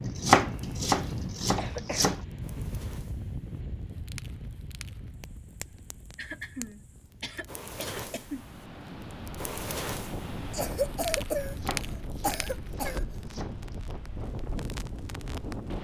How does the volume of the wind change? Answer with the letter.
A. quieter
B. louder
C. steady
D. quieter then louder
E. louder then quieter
D.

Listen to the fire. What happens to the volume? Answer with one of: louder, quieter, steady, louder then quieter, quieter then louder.
louder then quieter.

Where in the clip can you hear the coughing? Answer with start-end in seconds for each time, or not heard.
1.6-2.2, 6.2-8.4, 10.5-13.1.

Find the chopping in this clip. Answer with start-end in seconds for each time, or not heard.
0.0-2.2, 11.4-13.7.